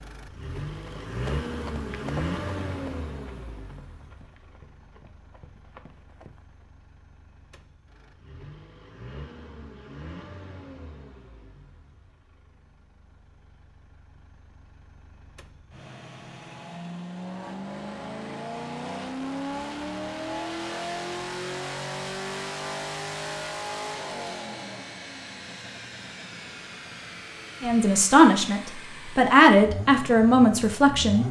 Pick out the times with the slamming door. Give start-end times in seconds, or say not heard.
not heard.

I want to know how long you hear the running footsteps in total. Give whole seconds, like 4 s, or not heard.
6 s.